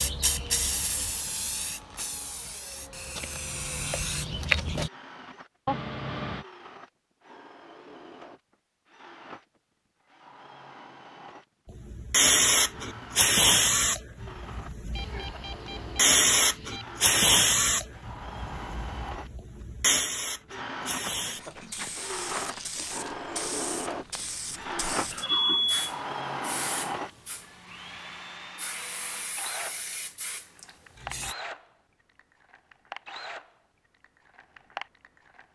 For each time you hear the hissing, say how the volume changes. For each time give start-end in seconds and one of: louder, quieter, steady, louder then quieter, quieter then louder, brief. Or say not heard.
0.0-4.9 quieter then louder
11.7-31.4 quieter.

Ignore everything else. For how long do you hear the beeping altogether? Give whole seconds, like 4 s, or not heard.
4 s.